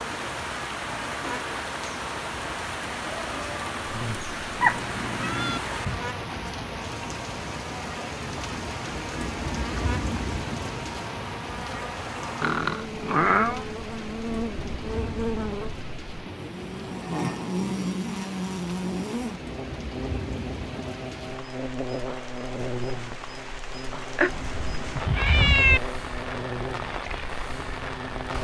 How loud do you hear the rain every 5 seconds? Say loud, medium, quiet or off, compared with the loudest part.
loud, loud, loud, medium, medium, loud.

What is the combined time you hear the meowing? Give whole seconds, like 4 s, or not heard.
4 s.